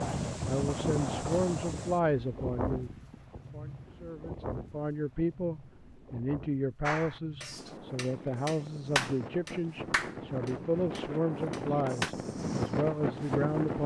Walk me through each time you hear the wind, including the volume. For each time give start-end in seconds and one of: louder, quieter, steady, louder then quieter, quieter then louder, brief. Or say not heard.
0.0-13.8 quieter then louder.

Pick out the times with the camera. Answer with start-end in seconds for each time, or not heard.
not heard.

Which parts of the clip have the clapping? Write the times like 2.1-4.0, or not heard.
6.8-12.2.